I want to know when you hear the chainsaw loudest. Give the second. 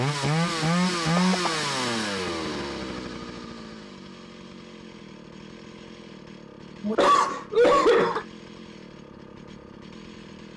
1 s.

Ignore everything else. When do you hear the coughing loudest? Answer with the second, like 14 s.
8 s.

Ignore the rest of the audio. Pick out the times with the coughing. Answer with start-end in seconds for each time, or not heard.
1.1-1.6, 6.8-8.2.